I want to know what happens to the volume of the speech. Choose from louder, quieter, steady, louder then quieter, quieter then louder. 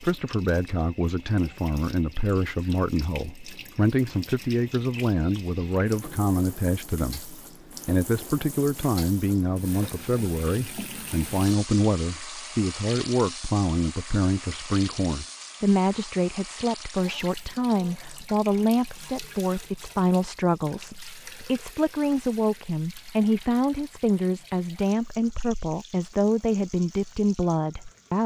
steady.